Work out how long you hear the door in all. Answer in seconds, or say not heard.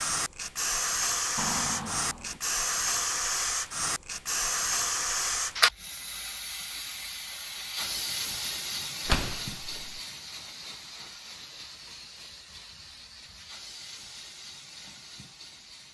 2 s.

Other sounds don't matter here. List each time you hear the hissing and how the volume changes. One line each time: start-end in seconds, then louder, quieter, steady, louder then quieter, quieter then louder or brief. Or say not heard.
0.0-15.8 quieter.